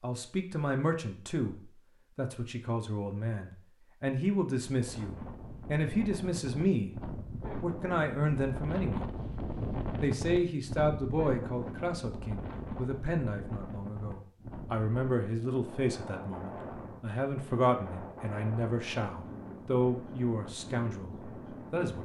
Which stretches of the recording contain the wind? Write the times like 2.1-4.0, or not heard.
4.7-21.9.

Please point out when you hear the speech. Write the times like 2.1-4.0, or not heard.
0.0-7.0, 7.6-9.2, 10.0-21.9.